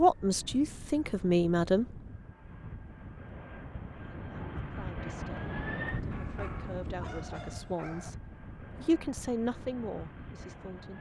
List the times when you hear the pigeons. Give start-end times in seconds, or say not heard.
not heard.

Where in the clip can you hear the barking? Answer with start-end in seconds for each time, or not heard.
6.1-8.1.